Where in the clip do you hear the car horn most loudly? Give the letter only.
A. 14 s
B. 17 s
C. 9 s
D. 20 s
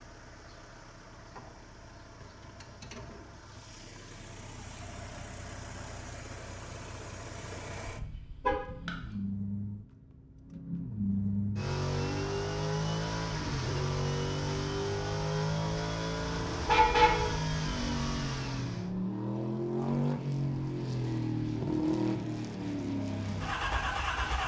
B.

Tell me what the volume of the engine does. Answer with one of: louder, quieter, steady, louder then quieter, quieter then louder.
louder.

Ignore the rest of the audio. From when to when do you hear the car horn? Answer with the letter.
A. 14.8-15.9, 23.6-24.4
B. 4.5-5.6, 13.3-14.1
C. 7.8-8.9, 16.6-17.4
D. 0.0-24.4
C.